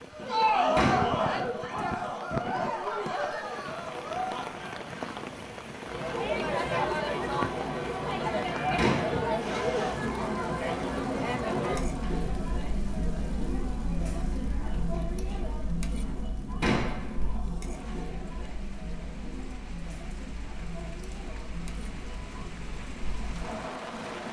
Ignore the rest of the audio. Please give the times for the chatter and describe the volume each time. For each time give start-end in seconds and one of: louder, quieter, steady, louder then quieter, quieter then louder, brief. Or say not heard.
0.0-24.2 quieter.